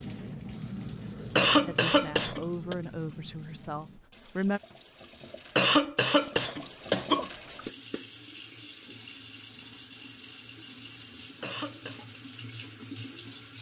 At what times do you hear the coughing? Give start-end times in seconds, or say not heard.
1.4-2.8, 5.5-7.3, 11.4-12.1.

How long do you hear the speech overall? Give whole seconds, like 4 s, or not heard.
3 s.